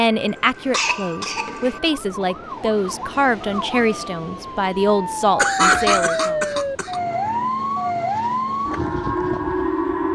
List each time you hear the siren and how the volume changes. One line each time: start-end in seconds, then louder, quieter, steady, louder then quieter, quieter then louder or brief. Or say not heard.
0.1-10.0 louder.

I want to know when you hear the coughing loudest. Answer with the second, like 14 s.
6 s.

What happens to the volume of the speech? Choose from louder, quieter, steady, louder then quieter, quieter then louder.
steady.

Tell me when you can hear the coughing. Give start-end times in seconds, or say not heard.
0.3-1.8, 5.3-7.0.